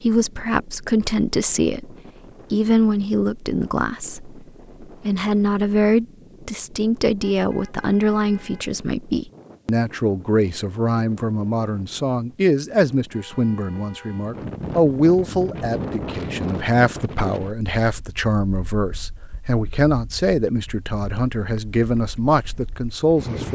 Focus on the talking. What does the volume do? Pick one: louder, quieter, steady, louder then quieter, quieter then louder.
steady.